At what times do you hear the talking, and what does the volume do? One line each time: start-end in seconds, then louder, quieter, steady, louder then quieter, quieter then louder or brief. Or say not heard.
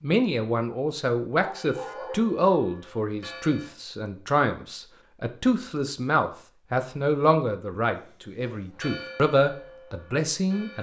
0.0-10.7 steady.